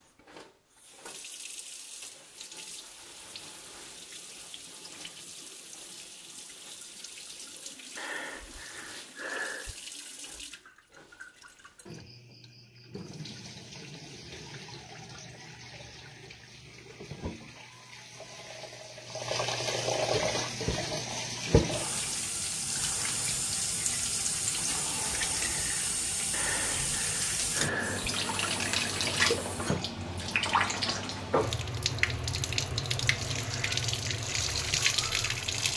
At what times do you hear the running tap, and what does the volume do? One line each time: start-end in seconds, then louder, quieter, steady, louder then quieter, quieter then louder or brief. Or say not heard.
0.0-35.7 louder.